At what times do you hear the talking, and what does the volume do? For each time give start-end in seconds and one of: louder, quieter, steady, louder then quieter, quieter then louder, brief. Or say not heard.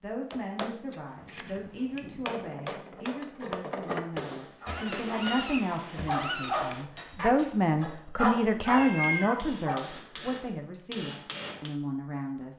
0.0-12.5 louder then quieter.